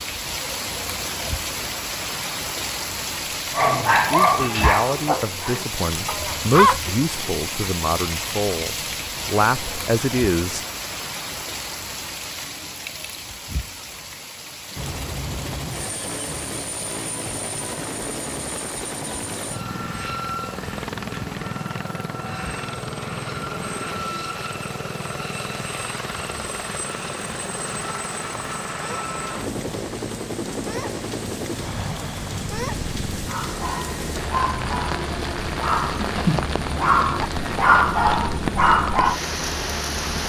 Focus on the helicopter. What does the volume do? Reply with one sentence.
The volume of the helicopter stays about the same.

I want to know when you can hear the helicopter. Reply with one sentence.
The helicopter can be heard from 14.8 to 40.2 s.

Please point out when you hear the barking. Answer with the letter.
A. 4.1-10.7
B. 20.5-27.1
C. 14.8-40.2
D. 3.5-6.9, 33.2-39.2
D.